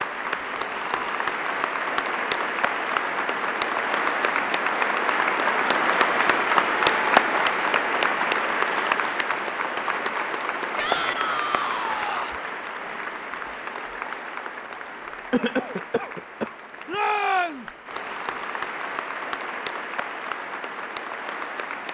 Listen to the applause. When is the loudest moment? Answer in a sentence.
The volume of the applause peaks at 7 seconds.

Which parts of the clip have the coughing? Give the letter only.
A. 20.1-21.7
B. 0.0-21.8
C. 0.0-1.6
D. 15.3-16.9
D.